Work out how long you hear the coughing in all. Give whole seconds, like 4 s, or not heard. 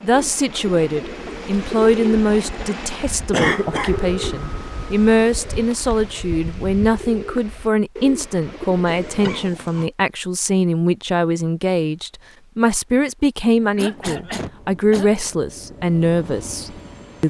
3 s.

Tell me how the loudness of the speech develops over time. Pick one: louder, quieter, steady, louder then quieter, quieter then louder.
steady.